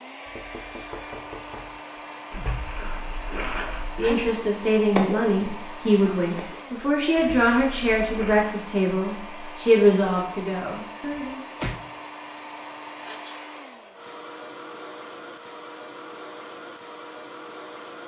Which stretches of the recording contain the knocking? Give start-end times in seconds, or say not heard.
0.2-1.8, 11.1-11.8.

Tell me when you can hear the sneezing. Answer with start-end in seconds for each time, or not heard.
4.0-4.5, 13.0-13.4.